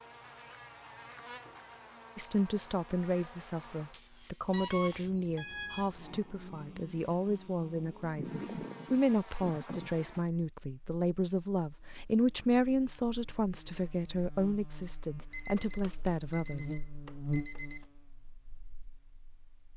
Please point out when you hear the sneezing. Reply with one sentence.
You can hear the sneezing from 8.2 to 10.1 s.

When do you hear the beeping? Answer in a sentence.
The beeping can be heard from 4.5 to 6.0 s and from 15.3 to 17.9 s.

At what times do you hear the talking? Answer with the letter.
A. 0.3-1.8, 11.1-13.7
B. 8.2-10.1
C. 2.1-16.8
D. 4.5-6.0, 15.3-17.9
C.